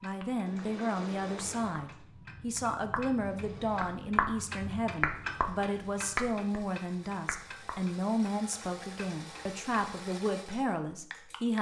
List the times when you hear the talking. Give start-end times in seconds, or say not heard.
0.0-11.5.